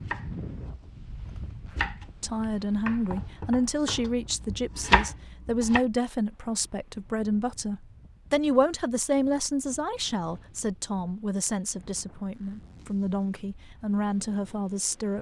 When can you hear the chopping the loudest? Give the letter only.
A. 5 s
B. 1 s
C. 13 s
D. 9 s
A.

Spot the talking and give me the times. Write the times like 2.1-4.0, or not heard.
2.2-15.1.